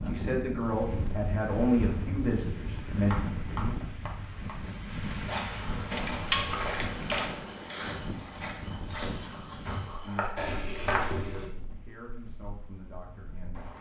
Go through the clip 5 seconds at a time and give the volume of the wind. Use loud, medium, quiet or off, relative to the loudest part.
loud, loud, quiet.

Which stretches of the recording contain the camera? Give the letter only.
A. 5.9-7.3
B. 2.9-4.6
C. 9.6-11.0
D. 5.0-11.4
A.